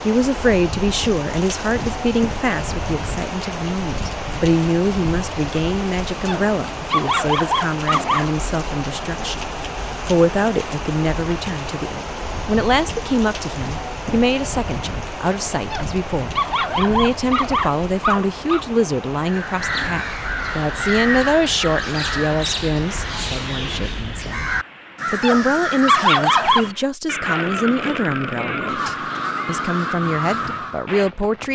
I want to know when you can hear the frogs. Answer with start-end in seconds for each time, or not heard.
not heard.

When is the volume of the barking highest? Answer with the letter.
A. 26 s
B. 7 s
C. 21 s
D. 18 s
A.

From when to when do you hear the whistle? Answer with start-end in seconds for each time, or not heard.
not heard.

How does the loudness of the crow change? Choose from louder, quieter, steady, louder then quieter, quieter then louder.
steady.